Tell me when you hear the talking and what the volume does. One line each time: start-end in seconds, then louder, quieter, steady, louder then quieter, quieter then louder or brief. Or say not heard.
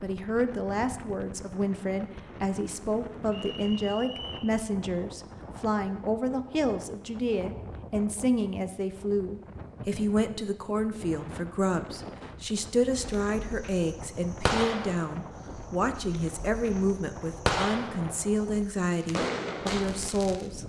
0.0-20.6 steady.